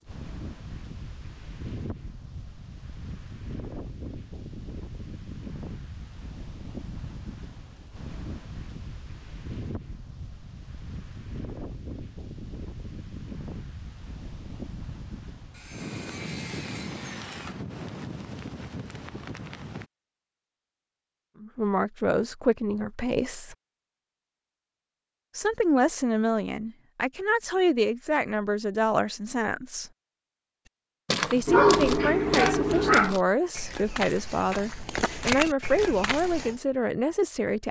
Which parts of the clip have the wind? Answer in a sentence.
You can hear the wind from 0.0 to 19.9 s.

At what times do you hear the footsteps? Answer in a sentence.
You can hear the footsteps from 31.1 to 36.5 s.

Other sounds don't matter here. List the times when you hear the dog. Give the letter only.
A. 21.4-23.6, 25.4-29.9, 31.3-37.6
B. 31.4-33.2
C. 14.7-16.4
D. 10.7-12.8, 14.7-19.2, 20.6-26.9
B.